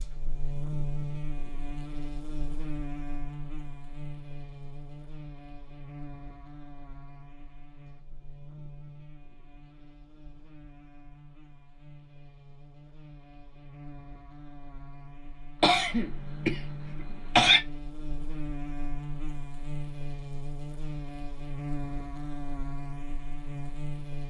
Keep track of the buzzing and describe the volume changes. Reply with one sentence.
The volume of the buzzing goes down, then up.